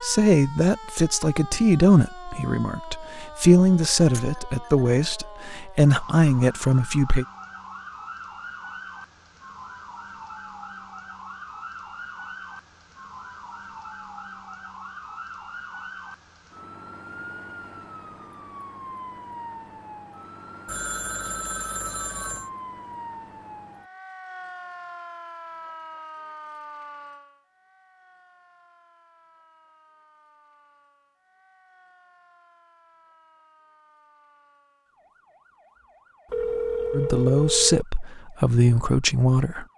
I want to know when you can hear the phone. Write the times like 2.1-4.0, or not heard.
4.0-5.3, 20.6-22.5, 36.2-37.9.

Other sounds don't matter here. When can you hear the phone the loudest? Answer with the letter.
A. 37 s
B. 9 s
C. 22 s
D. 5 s
A.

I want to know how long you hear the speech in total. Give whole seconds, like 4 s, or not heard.
10 s.